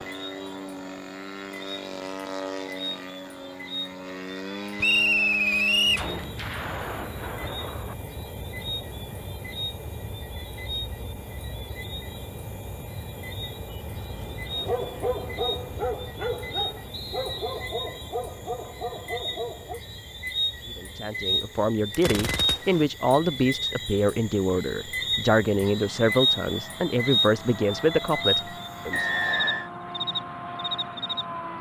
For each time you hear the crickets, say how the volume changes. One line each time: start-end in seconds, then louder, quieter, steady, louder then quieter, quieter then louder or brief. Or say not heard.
0.0-31.5 louder.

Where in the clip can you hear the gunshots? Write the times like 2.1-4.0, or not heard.
6.0-8.0, 21.9-22.9.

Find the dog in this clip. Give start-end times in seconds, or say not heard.
14.5-19.8.